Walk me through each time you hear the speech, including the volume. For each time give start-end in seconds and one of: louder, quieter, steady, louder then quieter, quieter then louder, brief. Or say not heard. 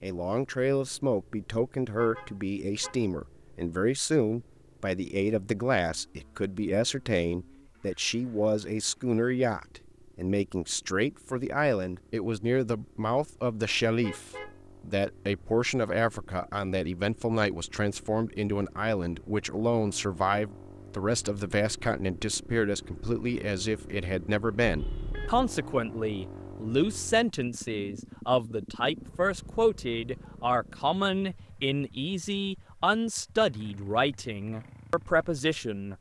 0.0-35.9 steady.